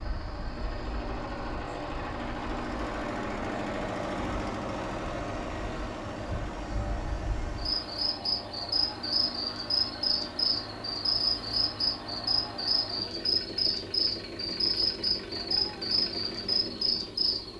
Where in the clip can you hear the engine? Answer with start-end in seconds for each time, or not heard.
0.0-17.5.